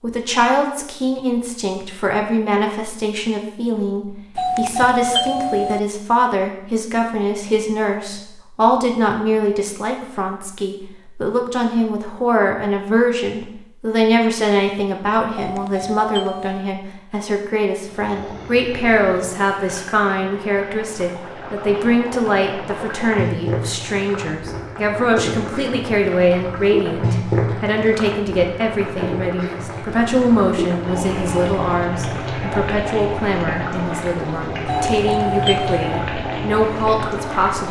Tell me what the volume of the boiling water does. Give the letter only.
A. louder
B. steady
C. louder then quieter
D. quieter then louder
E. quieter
A.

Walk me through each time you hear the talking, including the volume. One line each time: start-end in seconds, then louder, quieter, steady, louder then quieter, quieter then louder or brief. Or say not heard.
0.0-37.6 steady.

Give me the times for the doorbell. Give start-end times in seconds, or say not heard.
4.3-5.8, 15.3-16.7, 34.6-36.0.